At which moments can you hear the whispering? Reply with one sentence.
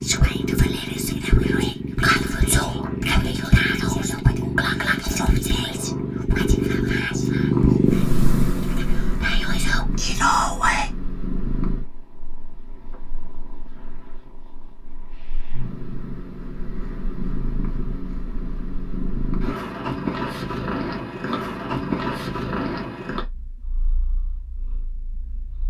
The whispering can be heard from 0.0 to 10.9 s.